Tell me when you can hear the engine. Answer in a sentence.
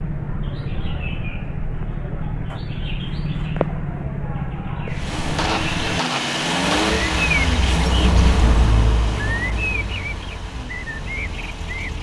The engine can be heard from 4.8 to 11.9 s.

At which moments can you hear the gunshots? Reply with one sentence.
You can hear the gunshots from 5.3 to 7.0 s.